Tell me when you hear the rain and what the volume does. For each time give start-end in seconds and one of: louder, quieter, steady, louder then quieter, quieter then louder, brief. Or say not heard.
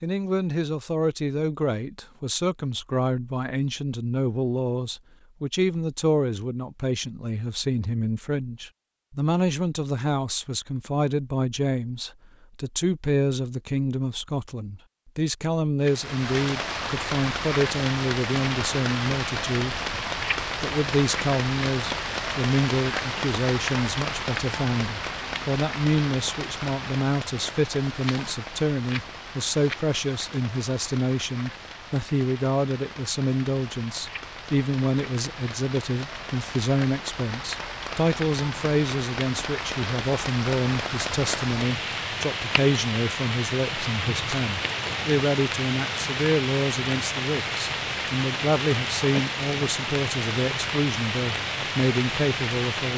15.8-52.9 quieter then louder.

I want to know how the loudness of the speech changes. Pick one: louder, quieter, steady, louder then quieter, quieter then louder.
steady.